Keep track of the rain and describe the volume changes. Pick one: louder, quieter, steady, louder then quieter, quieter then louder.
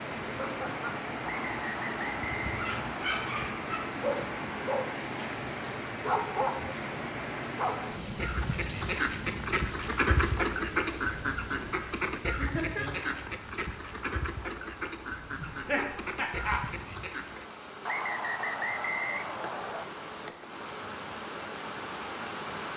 quieter then louder.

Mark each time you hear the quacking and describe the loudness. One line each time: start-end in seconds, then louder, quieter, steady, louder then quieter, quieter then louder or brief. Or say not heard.
8.1-17.4 quieter.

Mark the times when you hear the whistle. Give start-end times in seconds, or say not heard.
1.2-3.1, 17.9-19.9.